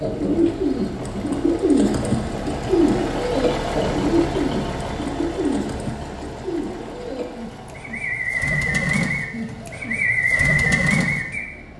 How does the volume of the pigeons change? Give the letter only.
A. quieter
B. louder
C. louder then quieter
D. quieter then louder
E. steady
D.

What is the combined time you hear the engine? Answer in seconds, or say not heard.
12 s.